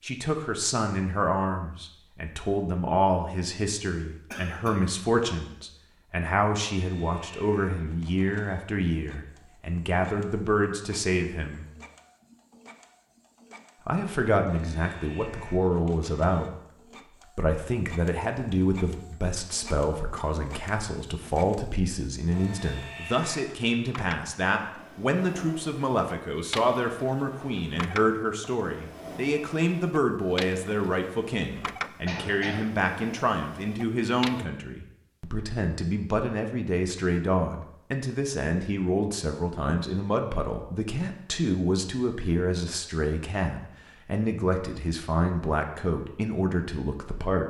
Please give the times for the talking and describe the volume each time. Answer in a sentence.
The talking can be heard from 0.0 to 11.7 s, at a steady volume; and from 13.8 to 47.4 s, at a steady volume.